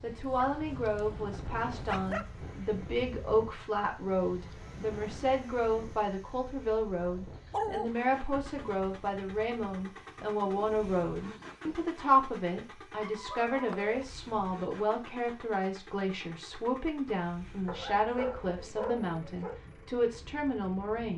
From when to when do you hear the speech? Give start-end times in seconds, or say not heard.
0.0-21.1.